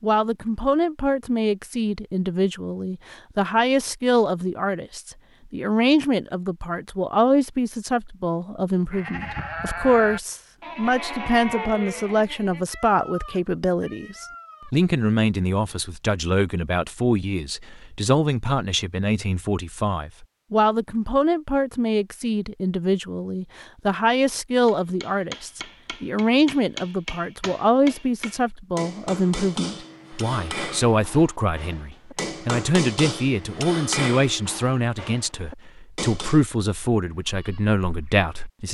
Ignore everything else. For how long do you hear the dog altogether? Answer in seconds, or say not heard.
not heard.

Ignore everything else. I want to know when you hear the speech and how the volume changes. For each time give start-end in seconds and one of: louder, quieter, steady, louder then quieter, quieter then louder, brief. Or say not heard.
0.0-38.6 steady.